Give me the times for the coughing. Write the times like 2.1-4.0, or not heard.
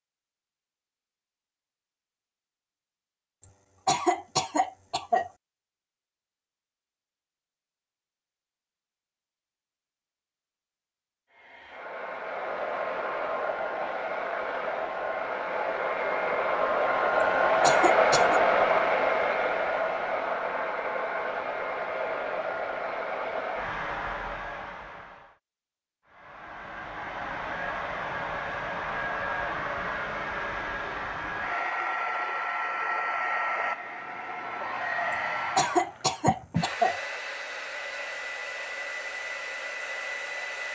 3.9-5.3, 17.2-18.4, 35.5-37.0.